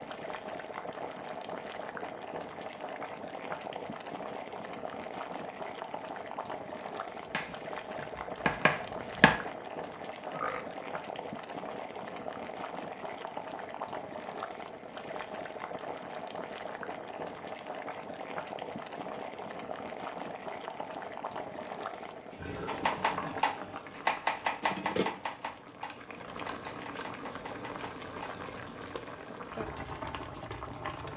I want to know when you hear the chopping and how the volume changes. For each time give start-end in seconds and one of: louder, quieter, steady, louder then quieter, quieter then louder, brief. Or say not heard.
7.2-9.4 brief
22.6-29.1 quieter.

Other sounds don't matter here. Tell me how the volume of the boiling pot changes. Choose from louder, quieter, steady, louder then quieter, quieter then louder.
steady.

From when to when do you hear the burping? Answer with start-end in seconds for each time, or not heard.
10.3-10.8, 22.4-23.6.